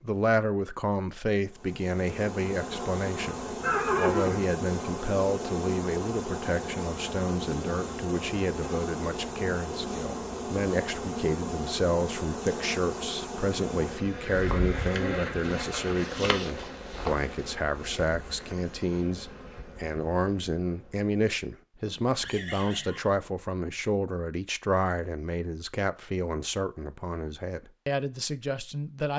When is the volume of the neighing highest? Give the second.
4 s.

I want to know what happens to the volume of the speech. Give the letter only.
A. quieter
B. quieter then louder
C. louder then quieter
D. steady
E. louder
D.